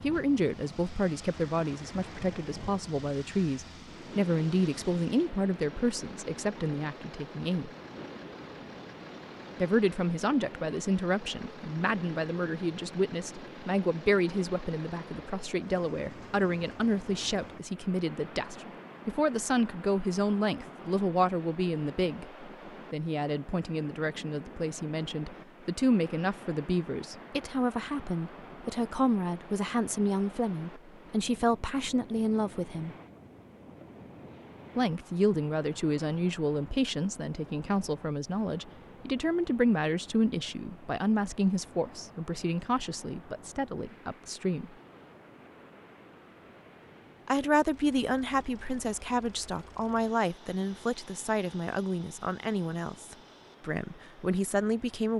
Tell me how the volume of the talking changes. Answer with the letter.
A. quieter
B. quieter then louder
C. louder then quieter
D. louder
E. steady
E.